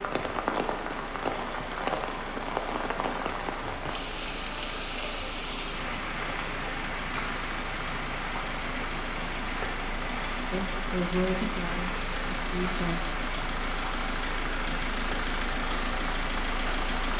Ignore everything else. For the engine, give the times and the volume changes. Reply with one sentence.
You can hear the engine from 0.0 to 17.1 s, getting louder.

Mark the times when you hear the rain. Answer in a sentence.
The rain can be heard from 0.0 to 17.1 s.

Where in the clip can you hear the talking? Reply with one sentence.
The talking can be heard from 10.5 to 12.9 s.